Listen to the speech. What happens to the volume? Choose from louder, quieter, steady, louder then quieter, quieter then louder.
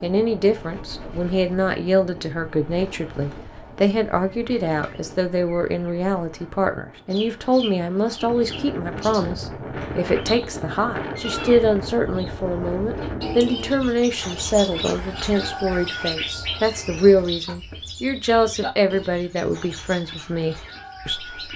steady.